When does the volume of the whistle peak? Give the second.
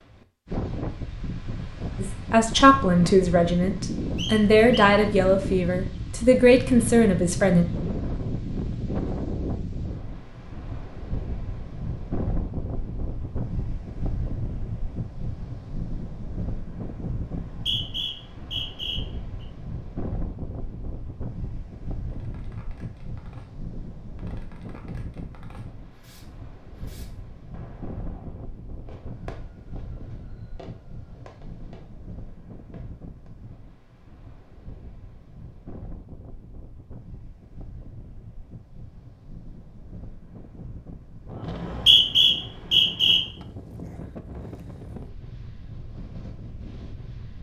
42 s.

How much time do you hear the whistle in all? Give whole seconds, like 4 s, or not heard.
5 s.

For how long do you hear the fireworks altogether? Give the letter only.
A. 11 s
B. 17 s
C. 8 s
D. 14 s
A.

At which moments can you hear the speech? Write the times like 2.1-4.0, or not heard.
1.9-7.7.